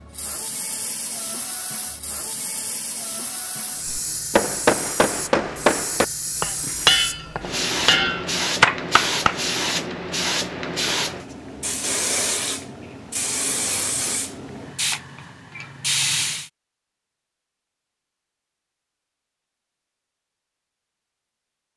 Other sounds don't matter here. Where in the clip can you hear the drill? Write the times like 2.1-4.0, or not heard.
not heard.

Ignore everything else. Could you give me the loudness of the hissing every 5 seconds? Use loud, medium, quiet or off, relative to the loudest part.
medium, loud, loud, loud, off.